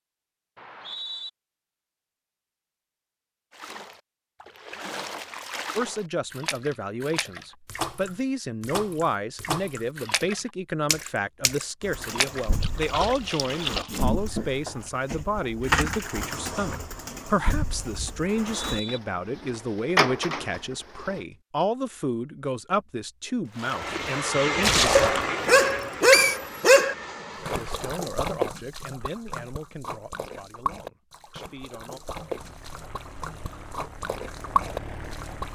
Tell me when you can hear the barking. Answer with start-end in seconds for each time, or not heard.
24.9-26.9.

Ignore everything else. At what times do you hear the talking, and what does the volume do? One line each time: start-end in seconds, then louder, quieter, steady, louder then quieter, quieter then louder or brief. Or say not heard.
5.8-25.0 steady
27.5-32.0 quieter.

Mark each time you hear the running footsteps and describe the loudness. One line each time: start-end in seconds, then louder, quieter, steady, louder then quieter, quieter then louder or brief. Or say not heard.
not heard.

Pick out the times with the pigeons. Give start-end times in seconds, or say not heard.
11.8-21.2.